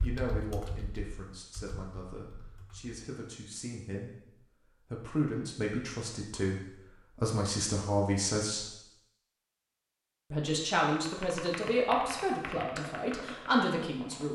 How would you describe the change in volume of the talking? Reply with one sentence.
The volume of the talking goes up.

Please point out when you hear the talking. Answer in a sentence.
The talking can be heard from 0.0 to 8.7 s and from 10.3 to 14.3 s.